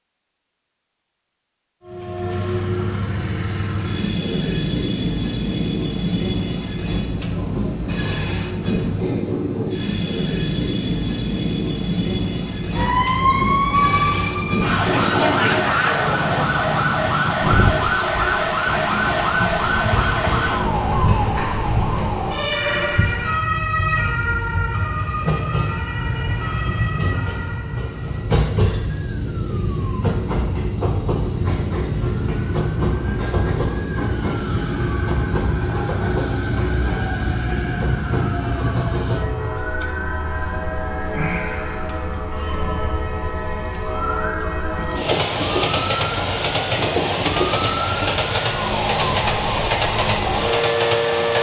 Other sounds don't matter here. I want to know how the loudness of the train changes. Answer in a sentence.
The loudness of the train stays about the same.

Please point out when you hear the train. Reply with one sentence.
The train can be heard from 1.9 to 51.3 s.